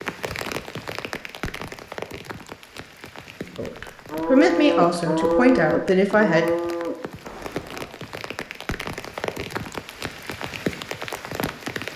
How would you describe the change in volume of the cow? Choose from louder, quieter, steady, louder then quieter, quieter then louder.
quieter.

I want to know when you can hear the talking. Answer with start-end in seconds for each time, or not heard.
3.5-6.5.